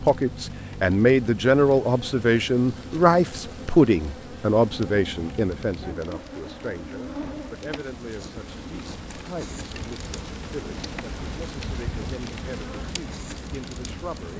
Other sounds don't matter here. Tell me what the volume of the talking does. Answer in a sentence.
The volume of the talking goes down.